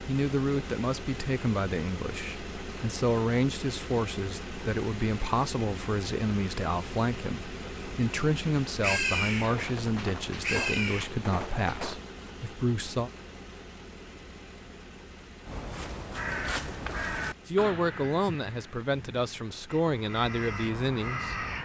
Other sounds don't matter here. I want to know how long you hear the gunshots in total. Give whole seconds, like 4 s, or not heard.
3 s.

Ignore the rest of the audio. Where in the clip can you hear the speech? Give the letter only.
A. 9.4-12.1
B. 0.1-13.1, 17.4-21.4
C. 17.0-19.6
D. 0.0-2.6
B.